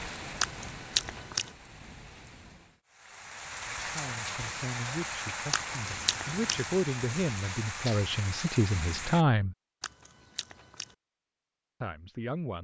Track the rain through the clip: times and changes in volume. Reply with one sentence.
You can hear the rain from 0.0 to 9.2 s, getting louder.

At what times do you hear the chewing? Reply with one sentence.
You can hear the chewing from 0.4 to 1.5 s, from 5.5 to 6.7 s and from 9.8 to 10.9 s.